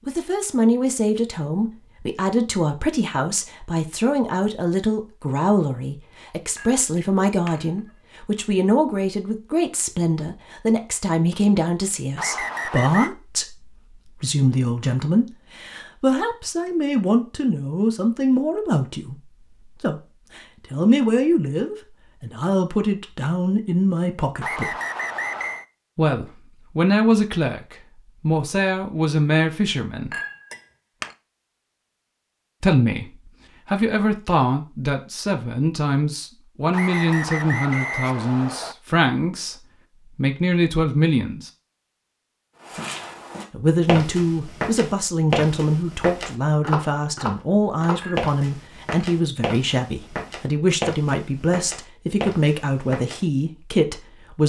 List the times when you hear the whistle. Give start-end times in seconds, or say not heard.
12.2-13.1, 24.4-25.6, 36.7-38.8.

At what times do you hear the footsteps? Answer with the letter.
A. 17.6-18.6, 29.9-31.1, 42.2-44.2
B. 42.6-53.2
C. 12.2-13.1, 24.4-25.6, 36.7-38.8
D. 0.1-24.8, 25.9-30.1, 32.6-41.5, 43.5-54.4
B.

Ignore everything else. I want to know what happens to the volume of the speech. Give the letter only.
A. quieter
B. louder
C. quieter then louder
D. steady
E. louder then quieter
D.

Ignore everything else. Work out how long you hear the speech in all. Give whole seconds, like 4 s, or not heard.
49 s.